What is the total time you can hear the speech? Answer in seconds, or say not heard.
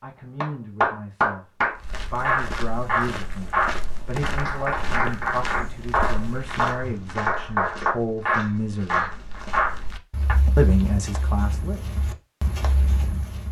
10 s.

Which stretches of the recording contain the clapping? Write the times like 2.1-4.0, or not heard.
0.4-10.3.